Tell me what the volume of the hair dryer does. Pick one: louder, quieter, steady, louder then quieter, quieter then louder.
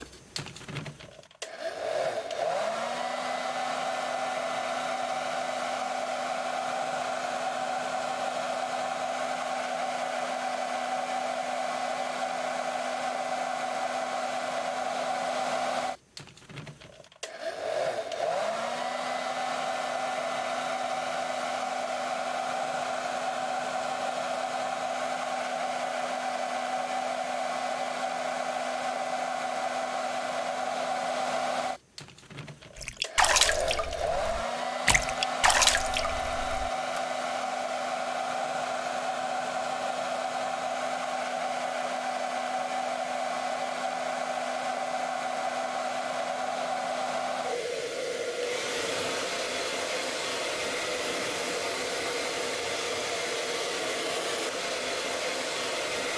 steady.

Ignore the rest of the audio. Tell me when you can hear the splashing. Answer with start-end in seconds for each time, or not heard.
32.8-37.0.